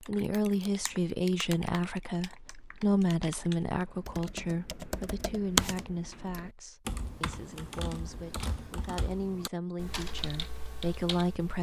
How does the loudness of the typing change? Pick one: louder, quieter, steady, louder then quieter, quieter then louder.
louder then quieter.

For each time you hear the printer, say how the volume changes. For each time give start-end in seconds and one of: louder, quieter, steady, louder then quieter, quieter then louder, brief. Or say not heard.
not heard.